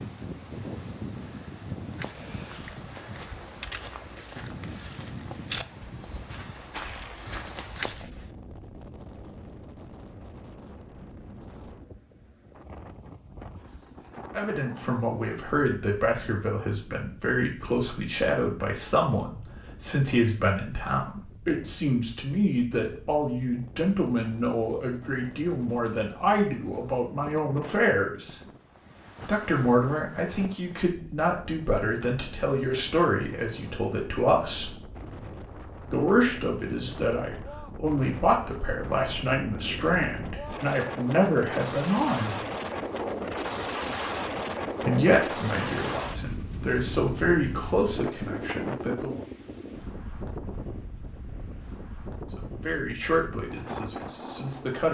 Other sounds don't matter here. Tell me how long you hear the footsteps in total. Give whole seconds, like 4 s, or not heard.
6 s.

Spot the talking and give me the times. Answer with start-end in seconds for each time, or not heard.
14.3-28.4, 29.2-34.8, 35.9-42.4, 44.8-49.2, 52.2-54.9.